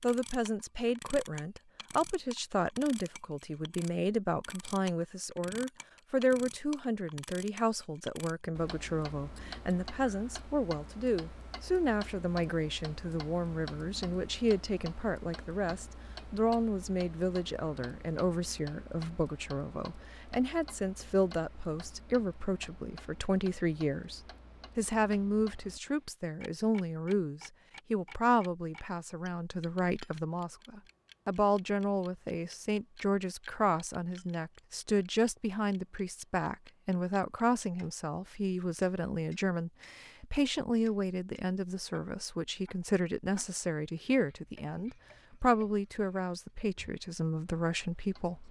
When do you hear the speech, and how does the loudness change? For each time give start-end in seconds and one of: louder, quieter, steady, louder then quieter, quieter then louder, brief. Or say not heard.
0.0-48.4 steady.